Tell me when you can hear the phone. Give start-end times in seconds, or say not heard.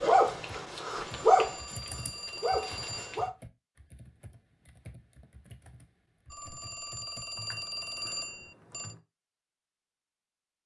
1.1-3.3, 6.3-8.9.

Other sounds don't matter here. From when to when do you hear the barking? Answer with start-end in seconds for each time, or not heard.
0.0-3.3.